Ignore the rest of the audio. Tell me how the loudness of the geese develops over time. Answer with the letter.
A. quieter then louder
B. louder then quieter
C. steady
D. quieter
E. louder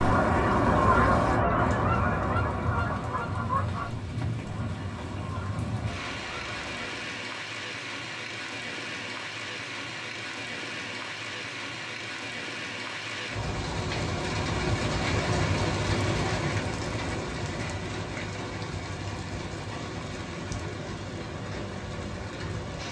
D.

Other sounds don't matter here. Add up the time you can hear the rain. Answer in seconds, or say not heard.
23 s.